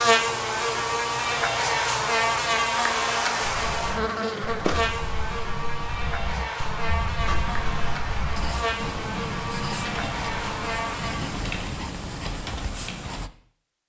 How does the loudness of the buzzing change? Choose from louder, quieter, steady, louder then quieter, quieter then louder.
quieter.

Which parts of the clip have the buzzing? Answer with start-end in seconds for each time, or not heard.
0.0-11.4.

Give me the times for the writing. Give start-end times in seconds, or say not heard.
7.2-13.3.